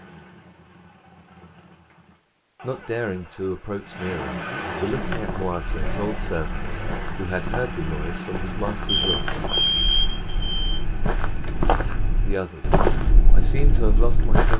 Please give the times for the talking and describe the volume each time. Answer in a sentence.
You can hear the talking from 2.6 to 9.3 s, at a steady volume; and briefly from 12.2 to 14.5 s.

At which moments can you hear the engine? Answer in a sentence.
The engine can be heard from 0.0 to 14.5 s.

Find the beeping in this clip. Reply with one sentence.
The beeping can be heard from 8.8 to 10.6 s.